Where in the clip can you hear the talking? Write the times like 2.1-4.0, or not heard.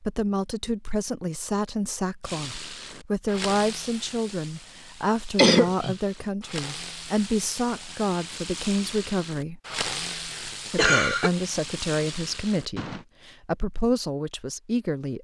0.0-9.6, 10.7-15.1.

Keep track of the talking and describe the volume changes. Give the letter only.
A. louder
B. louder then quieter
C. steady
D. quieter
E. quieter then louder
C.